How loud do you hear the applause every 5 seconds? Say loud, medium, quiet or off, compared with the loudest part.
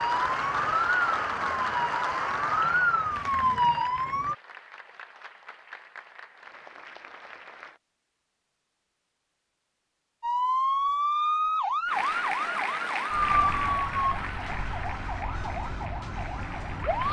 loud, quiet, loud, medium.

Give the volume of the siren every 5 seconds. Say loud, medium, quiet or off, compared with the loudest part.
loud, off, loud, medium.